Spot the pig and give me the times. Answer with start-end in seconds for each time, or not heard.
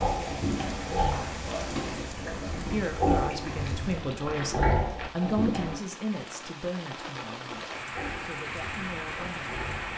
0.0-5.8, 7.9-9.9.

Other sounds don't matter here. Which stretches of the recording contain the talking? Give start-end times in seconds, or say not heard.
2.5-9.7.